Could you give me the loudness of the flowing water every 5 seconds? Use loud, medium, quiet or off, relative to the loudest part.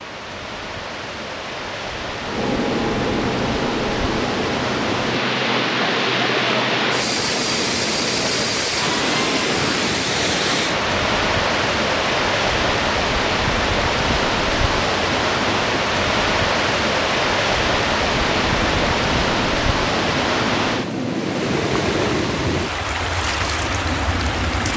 medium, loud, loud, loud, loud.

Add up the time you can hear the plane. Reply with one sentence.
The plane can be heard for 13 seconds in total.